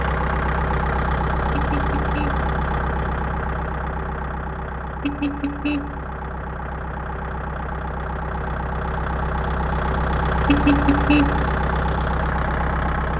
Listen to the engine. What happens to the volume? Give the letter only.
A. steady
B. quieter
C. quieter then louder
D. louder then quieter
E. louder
C.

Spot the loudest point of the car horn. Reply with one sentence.
The volume of the car horn peaks at 11 seconds.